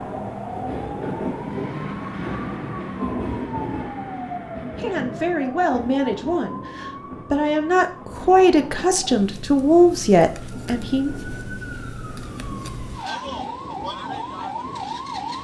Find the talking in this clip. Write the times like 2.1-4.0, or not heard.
4.8-11.1.